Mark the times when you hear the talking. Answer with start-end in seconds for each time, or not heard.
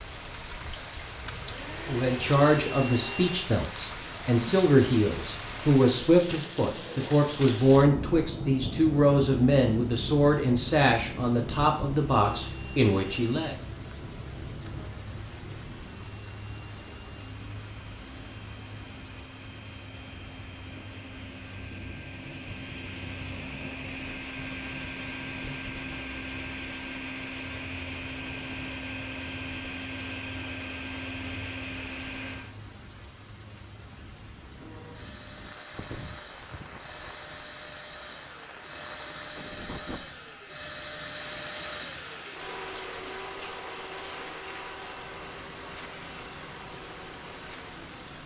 1.9-13.6.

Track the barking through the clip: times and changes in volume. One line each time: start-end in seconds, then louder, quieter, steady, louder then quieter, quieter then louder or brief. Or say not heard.
not heard.